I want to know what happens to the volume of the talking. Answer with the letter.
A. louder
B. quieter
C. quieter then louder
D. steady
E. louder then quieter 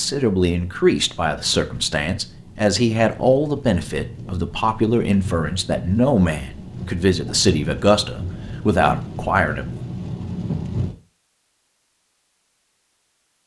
D.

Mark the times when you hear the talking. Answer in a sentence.
The talking can be heard from 0.0 to 9.7 s.